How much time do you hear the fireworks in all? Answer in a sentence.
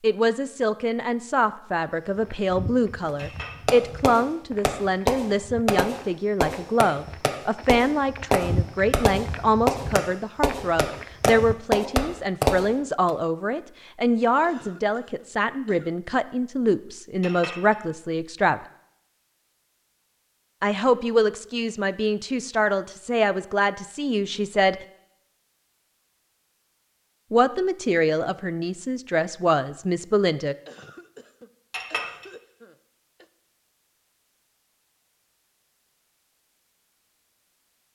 The fireworks can be heard for 10 seconds in total.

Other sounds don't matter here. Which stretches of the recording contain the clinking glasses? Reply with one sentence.
You can hear the clinking glasses from 3.1 to 3.7 s, from 17.2 to 17.8 s and from 31.7 to 32.2 s.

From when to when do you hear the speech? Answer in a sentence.
The speech can be heard from 0.0 to 18.6 s, from 20.6 to 24.8 s and from 27.3 to 30.6 s.